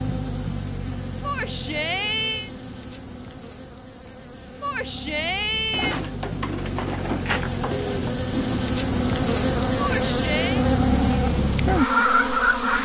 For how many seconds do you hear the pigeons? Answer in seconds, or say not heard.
3 s.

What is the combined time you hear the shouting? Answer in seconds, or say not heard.
4 s.